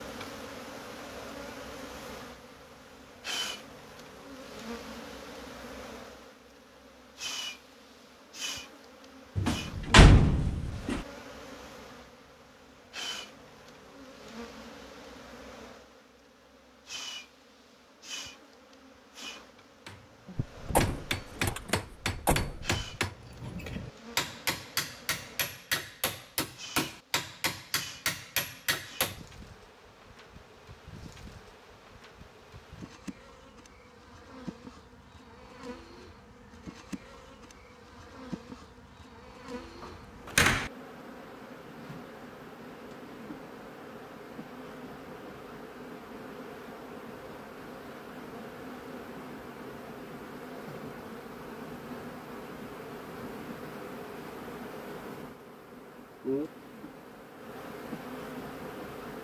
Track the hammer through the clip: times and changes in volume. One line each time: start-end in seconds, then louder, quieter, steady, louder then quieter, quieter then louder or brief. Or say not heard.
19.9-29.2 steady.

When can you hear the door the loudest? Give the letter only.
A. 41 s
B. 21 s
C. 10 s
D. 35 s
C.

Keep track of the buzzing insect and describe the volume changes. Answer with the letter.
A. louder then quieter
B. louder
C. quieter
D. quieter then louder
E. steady
D.